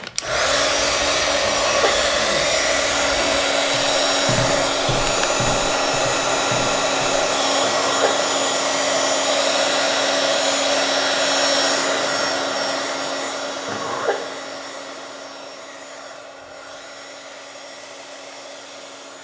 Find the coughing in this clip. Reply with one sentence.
The coughing can be heard from 1.4 to 2.5 s, from 7.6 to 8.2 s and from 13.7 to 14.2 s.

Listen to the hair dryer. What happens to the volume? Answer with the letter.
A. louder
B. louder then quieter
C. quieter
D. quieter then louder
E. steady
C.